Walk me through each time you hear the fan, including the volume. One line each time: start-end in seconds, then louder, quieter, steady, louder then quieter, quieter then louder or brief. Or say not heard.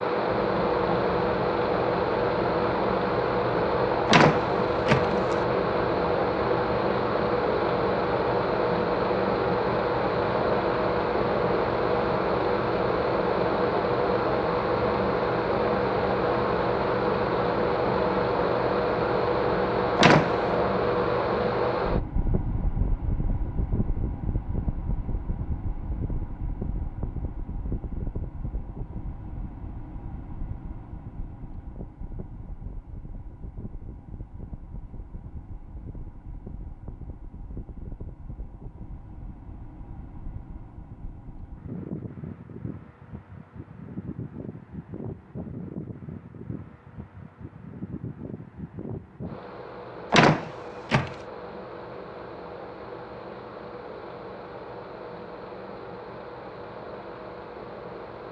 0.0-58.2 quieter.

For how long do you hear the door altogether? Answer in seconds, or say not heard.
3 s.